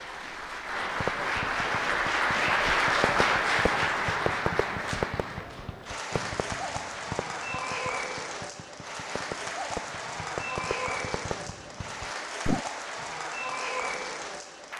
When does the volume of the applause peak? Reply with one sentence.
The volume of the applause peaks at 3 seconds.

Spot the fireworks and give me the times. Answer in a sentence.
You can hear the fireworks from 0.8 to 12.6 s.